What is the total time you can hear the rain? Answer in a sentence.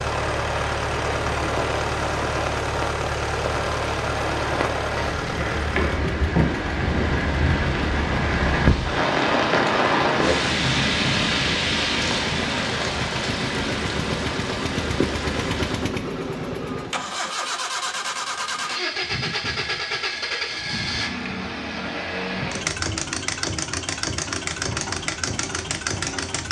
The rain can be heard for 16 seconds in total.